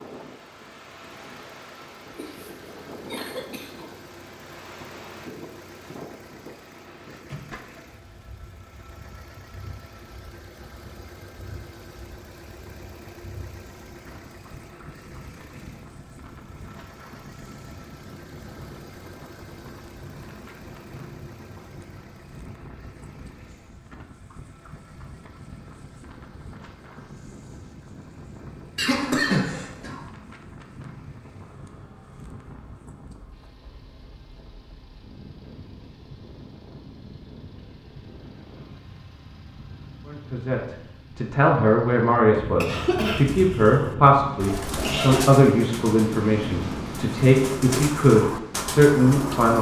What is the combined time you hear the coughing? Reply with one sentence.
You can hear the coughing for 6 seconds altogether.